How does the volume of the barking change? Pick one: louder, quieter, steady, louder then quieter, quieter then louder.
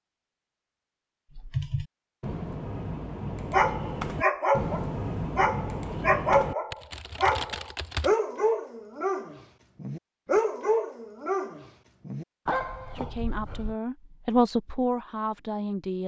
quieter.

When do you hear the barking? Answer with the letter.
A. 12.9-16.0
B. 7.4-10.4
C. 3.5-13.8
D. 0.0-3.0
C.